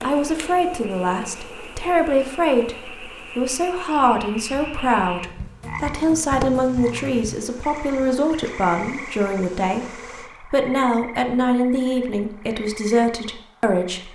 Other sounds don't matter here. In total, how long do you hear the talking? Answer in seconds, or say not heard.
14 s.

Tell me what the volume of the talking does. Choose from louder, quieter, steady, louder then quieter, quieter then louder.
steady.